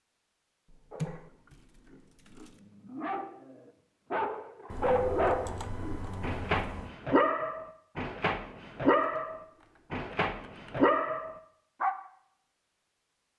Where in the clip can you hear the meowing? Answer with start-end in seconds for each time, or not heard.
not heard.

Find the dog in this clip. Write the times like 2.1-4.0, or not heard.
0.9-1.3, 1.9-11.9.